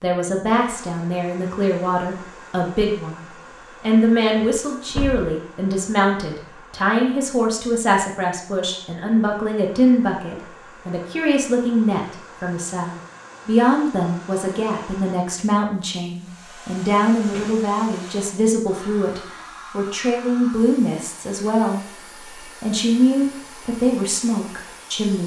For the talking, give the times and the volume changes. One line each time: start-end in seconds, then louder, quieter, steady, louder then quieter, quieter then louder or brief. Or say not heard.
0.0-21.8 steady
22.4-25.2 brief.